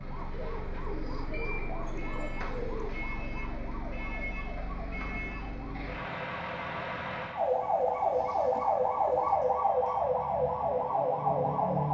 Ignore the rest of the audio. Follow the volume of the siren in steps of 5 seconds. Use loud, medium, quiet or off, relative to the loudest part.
quiet, loud, loud.